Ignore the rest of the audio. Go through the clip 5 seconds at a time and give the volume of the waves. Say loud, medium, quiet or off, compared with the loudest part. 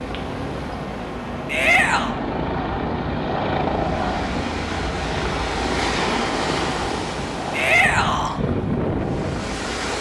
medium, loud.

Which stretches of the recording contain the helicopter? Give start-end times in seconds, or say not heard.
0.0-9.9.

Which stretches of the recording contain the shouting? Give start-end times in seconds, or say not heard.
1.4-2.1, 7.5-8.4.